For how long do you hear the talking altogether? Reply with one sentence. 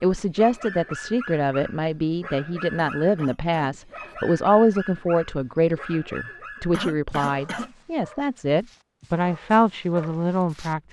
You can hear the talking for 11 seconds altogether.